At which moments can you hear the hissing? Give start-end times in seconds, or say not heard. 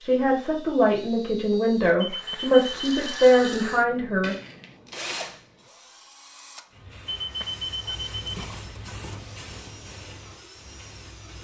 6.7-11.3.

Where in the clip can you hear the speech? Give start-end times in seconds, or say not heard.
0.0-4.3.